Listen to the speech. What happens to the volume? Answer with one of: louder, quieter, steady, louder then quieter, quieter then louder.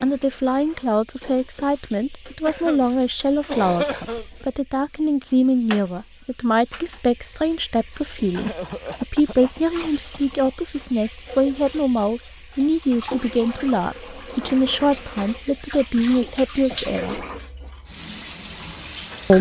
steady.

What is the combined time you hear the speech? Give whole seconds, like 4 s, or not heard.
17 s.